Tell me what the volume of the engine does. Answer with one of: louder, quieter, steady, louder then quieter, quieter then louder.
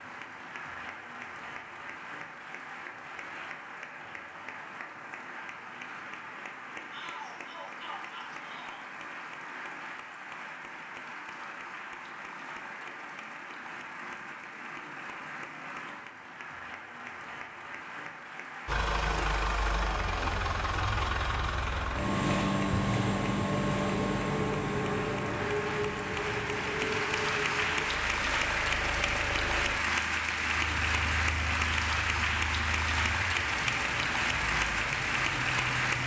quieter.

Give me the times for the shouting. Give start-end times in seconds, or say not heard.
6.9-8.9.